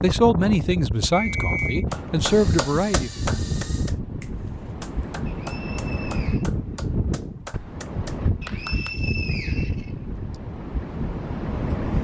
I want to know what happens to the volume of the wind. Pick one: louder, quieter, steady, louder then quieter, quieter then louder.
steady.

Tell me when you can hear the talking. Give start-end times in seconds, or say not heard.
0.0-3.1.